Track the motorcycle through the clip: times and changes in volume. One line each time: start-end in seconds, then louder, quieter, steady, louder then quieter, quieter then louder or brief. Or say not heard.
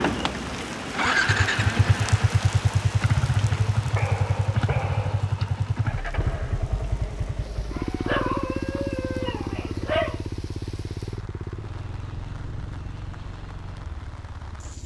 0.0-14.8 quieter.